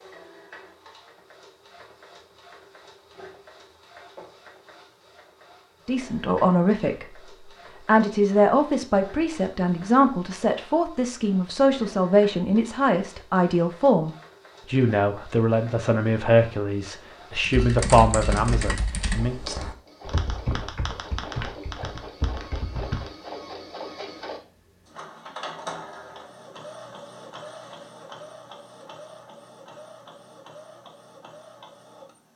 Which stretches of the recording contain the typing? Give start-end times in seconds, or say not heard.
17.4-23.1.